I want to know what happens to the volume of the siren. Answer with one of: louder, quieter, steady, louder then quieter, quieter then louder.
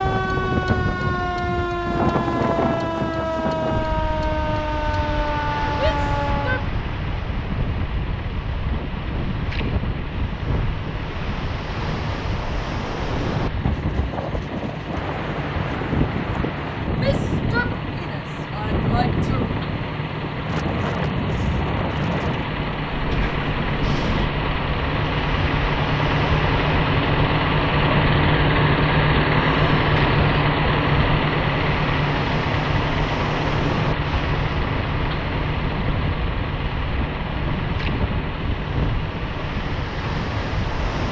steady.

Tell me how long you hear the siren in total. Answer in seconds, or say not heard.
7 s.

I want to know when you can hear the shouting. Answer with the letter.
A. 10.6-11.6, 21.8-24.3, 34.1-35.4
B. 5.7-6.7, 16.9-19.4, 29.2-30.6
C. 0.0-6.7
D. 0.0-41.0
B.